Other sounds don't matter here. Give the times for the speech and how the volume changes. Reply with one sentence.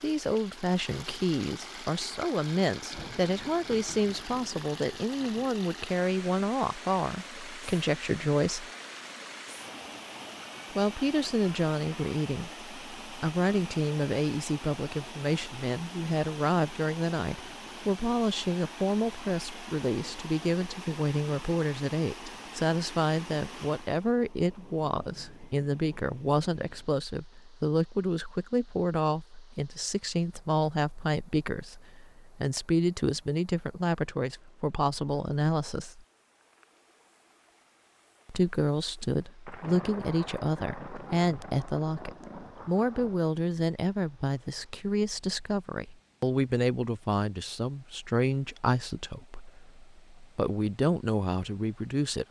You can hear the speech from 0.0 to 8.7 s, at a steady volume; from 10.7 to 36.0 s, at a steady volume; and from 38.2 to 52.2 s, at a steady volume.